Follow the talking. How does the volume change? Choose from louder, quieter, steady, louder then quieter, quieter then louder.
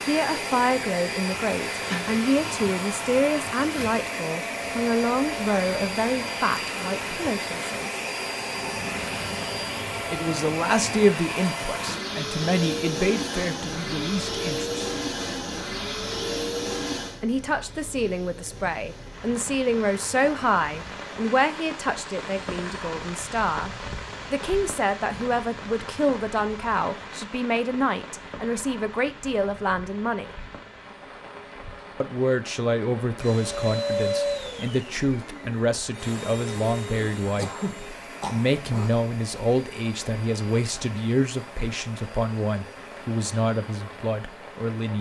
steady.